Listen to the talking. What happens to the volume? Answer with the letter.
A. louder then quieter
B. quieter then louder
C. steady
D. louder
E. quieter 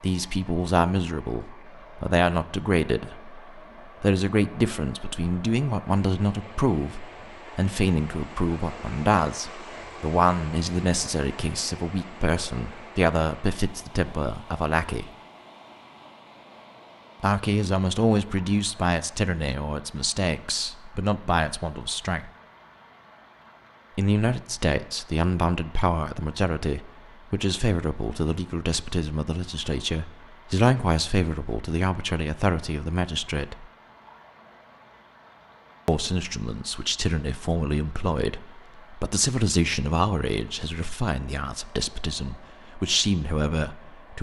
C.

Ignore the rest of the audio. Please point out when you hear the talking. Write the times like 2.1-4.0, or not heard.
0.0-15.1, 17.2-22.3, 23.9-33.6, 35.9-44.1.